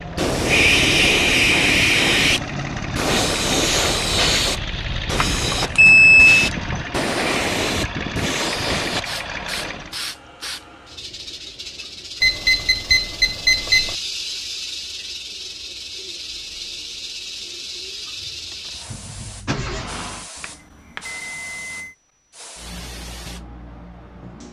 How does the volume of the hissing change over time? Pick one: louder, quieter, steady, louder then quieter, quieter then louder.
quieter.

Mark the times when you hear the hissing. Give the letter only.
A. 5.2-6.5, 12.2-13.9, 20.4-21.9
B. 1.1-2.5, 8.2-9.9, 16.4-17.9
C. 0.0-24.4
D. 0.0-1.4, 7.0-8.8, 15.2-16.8
C.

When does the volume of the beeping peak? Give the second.
6 s.